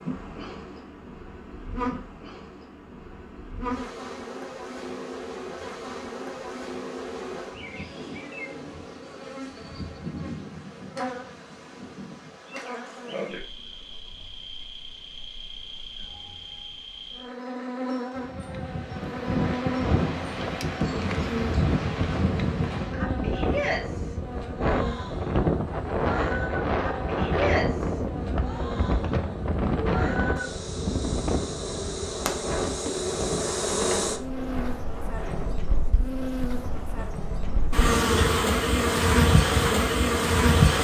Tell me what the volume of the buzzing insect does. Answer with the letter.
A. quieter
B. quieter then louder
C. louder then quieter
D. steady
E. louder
E.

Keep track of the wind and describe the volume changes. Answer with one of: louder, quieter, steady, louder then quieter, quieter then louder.
quieter.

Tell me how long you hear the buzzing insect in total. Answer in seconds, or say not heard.
41 s.